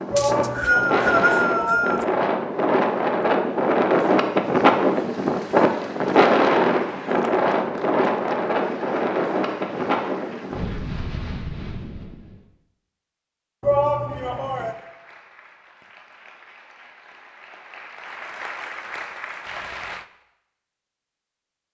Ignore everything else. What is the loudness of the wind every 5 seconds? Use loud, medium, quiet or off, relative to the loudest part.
loud, loud, medium, off, off.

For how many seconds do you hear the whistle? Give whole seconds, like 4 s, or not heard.
2 s.